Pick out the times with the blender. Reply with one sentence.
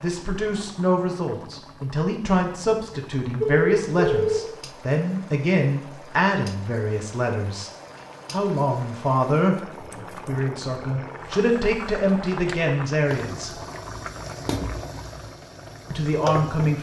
The blender can't be heard in this clip.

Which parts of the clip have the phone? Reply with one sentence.
You can hear the phone from 3.4 to 4.4 s.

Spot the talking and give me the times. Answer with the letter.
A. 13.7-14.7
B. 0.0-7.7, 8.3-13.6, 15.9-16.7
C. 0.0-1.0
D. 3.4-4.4
B.